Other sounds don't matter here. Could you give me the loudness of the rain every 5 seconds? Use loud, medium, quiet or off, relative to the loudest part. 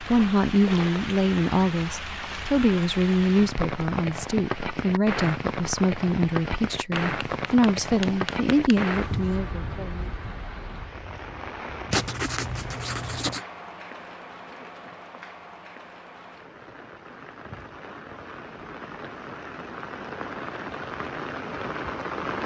loud, loud, medium, medium, loud.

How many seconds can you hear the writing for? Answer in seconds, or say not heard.
4 s.